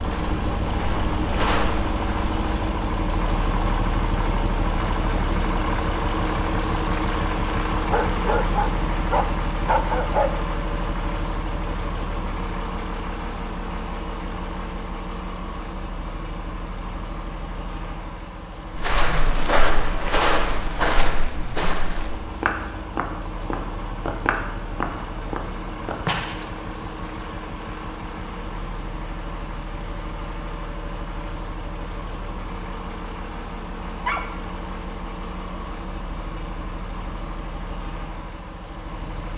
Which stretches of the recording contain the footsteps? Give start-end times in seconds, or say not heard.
0.0-2.4, 18.8-26.4.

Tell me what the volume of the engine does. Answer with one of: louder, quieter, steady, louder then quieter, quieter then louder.
quieter.